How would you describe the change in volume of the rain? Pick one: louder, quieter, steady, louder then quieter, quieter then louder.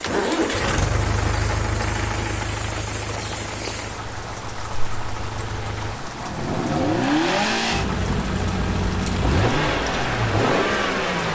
steady.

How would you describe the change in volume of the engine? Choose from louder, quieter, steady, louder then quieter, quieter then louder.
quieter then louder.